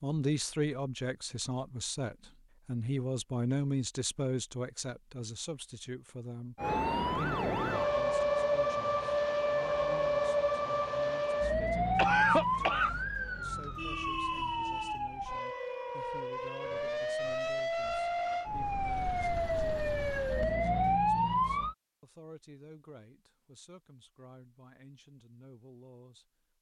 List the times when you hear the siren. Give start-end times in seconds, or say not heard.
6.5-21.8.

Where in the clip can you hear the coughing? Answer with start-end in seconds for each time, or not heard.
11.9-12.9.